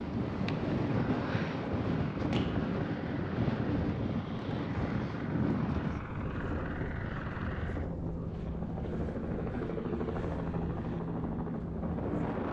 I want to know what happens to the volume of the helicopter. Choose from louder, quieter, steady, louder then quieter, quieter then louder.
louder.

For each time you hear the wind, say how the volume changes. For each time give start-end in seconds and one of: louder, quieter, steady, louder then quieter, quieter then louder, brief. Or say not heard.
0.0-12.4 quieter.